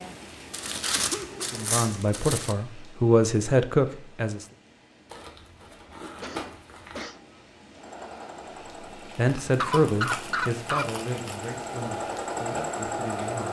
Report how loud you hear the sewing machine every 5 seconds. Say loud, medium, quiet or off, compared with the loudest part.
off, medium, loud.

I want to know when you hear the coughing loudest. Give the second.
10 s.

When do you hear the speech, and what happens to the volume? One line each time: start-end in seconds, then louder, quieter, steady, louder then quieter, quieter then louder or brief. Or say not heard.
1.5-4.5 brief
8.9-13.4 quieter.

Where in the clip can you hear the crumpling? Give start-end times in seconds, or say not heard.
0.5-2.5, 5.0-7.0, 9.2-11.5.